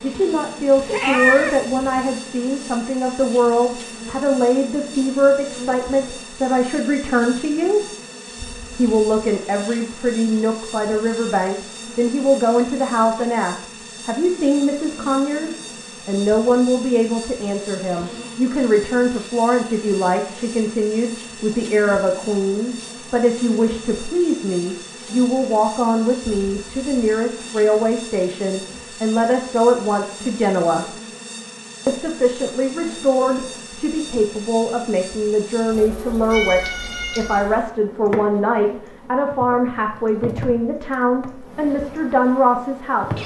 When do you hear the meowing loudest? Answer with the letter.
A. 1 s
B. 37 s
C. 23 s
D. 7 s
A.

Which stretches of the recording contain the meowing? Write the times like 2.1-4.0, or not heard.
0.8-2.0, 36.3-37.5.